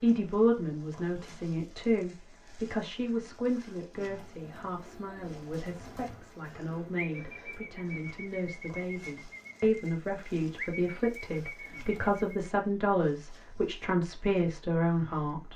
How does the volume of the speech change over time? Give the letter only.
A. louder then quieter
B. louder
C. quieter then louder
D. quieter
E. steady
C.